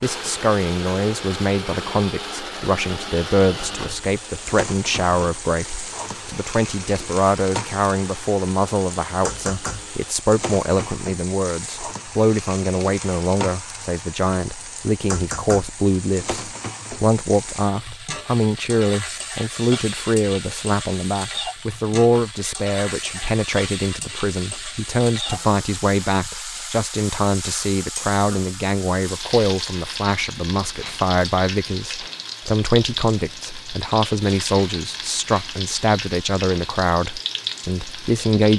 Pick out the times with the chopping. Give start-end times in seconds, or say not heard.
not heard.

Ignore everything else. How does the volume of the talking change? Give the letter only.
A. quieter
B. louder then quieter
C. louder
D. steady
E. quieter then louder
D.